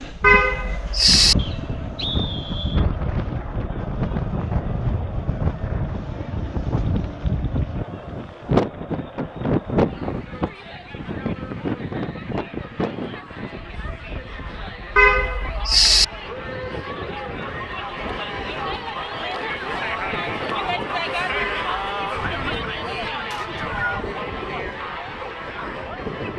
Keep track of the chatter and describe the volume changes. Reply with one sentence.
The volume of the chatter goes up.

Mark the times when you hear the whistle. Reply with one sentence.
You can hear the whistle from 1.4 to 2.9 s and from 23.3 to 24.1 s.